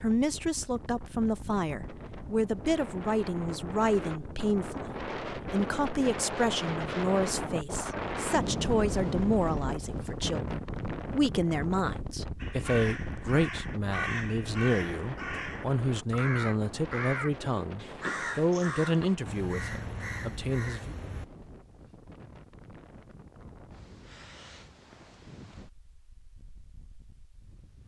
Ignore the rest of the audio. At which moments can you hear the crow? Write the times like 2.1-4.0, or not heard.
12.4-21.2.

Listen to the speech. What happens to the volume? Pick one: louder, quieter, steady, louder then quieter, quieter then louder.
steady.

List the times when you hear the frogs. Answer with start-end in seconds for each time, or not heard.
not heard.